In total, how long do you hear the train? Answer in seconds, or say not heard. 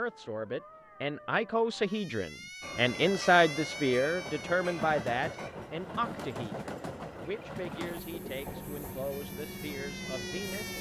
8 s.